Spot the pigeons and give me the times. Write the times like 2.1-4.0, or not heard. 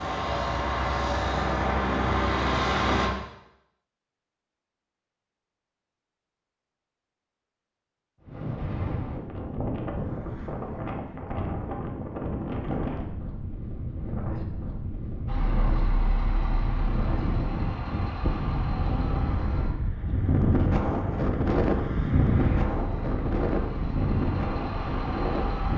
not heard.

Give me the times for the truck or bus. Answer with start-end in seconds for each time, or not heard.
0.0-3.1, 15.2-25.7.